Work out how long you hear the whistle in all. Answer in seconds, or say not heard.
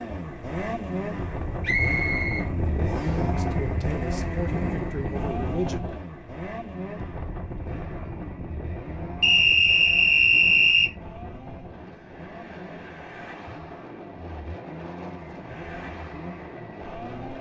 3 s.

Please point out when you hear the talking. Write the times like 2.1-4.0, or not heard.
3.2-5.9.